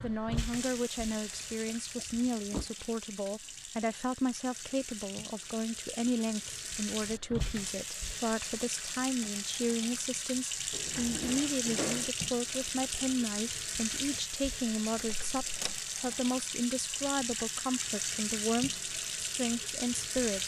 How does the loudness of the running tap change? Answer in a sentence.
The loudness of the running tap goes up.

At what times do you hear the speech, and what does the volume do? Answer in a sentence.
The speech can be heard from 0.0 to 20.4 s, at a steady volume.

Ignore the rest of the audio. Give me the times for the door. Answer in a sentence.
The door can be heard from 1.4 to 2.7 s, from 10.7 to 12.1 s and from 14.9 to 15.8 s.